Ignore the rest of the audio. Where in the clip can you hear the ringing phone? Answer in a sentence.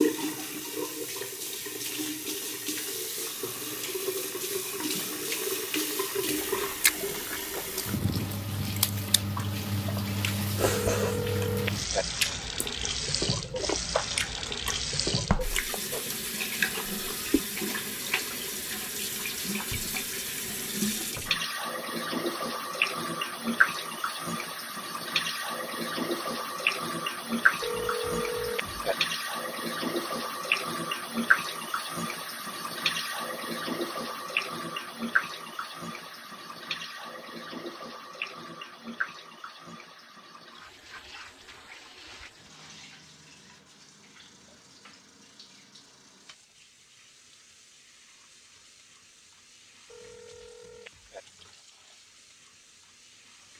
The ringing phone can be heard from 10.7 to 12.1 s, from 27.6 to 28.9 s and from 49.9 to 51.2 s.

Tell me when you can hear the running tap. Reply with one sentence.
The running tap can be heard from 0.0 to 53.5 s.